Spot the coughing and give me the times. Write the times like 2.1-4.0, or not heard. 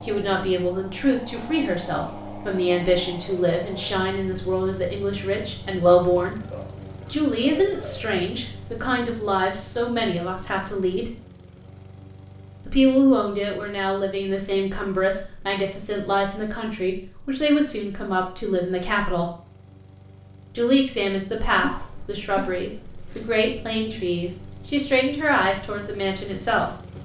6.4-8.2, 21.6-23.3.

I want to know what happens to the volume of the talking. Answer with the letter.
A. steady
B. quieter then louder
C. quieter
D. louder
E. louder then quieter
A.